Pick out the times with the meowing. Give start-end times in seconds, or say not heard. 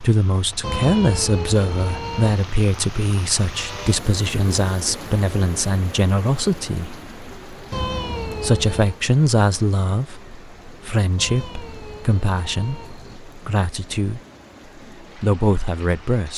0.6-2.5, 7.7-9.0, 11.2-13.2.